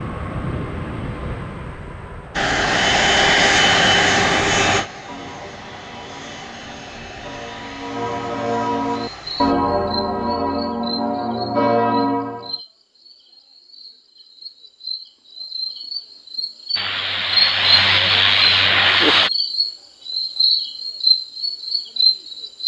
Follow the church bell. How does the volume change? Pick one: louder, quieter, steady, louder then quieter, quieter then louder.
louder.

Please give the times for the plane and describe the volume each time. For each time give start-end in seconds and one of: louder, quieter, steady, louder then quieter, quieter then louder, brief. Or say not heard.
0.0-9.6 louder then quieter
16.8-19.3 brief.